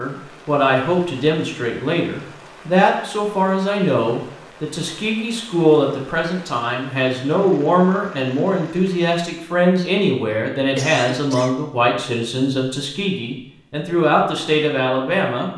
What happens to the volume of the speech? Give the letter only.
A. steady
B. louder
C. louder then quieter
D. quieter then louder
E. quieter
A.